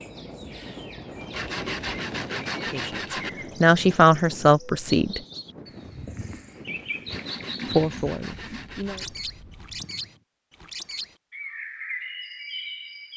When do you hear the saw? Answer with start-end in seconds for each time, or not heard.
1.3-3.3, 7.0-9.1.